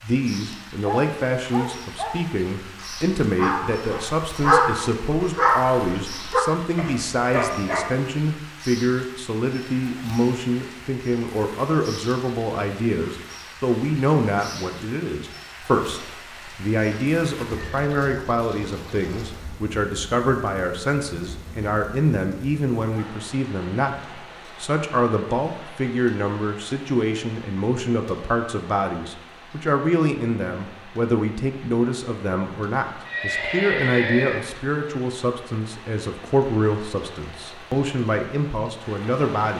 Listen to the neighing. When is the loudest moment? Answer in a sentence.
The volume of the neighing peaks at 34 seconds.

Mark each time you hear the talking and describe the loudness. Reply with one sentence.
You can hear the talking from 0.0 to 39.5 s, at a steady volume.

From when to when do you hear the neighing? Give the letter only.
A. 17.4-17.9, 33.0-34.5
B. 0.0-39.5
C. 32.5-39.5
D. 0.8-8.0
A.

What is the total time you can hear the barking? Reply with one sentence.
The barking can be heard for 7 seconds in total.